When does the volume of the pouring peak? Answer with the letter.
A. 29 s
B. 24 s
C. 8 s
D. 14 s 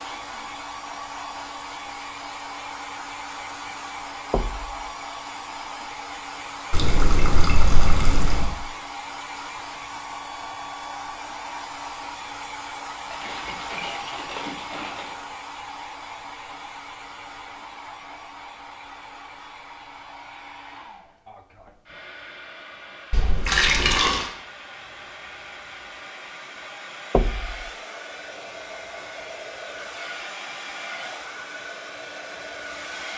B.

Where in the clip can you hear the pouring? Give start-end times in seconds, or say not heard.
6.7-8.6, 13.1-15.2, 23.1-24.2.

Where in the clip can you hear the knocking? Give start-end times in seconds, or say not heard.
4.3-4.8, 27.1-27.7.